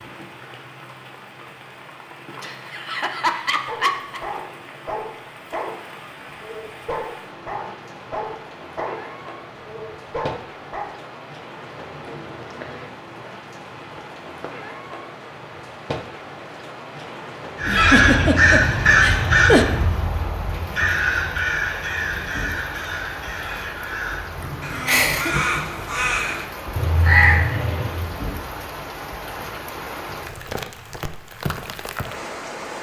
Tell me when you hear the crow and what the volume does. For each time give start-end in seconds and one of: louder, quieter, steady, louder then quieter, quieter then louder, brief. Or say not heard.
17.6-28.1 quieter then louder.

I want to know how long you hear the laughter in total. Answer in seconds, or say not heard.
5 s.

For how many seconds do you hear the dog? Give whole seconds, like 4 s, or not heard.
7 s.